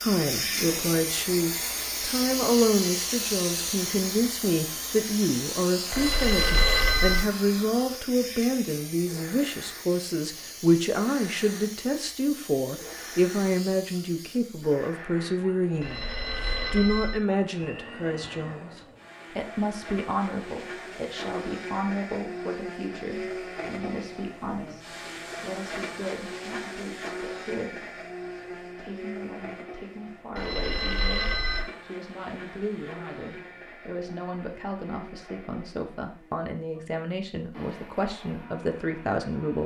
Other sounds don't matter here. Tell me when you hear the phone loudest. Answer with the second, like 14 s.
7 s.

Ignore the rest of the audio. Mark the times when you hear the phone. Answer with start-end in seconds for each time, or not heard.
5.9-7.2, 15.8-17.2, 30.4-31.6.